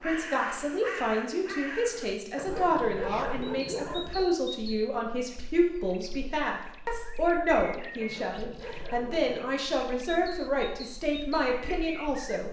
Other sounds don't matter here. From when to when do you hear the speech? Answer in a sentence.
You can hear the speech from 0.0 to 12.4 s.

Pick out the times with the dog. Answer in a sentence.
You can hear the dog from 2.4 to 4.2 s and from 8.0 to 9.6 s.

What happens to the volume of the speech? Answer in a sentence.
The volume of the speech stays about the same.